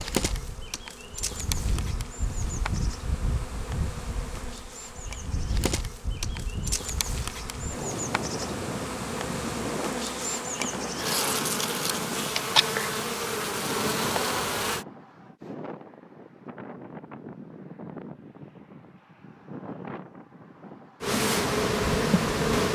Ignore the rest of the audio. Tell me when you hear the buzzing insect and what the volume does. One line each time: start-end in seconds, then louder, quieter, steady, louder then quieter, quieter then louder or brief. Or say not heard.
0.0-14.8 louder
21.0-22.7 brief.